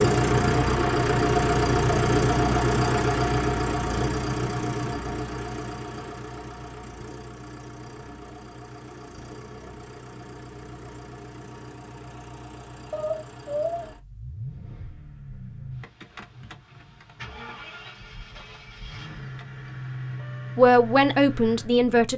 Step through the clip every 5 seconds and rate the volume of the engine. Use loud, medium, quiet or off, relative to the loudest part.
loud, quiet, quiet, quiet, quiet.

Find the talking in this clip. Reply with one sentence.
The talking can be heard from 20.6 to 22.1 s.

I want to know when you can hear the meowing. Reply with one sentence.
The meowing can be heard from 12.9 to 13.9 s.